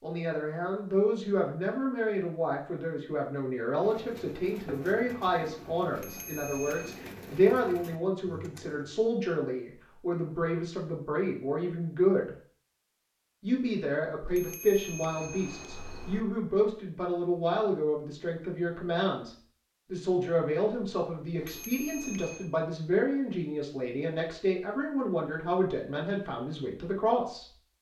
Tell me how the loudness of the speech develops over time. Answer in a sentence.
The loudness of the speech stays about the same.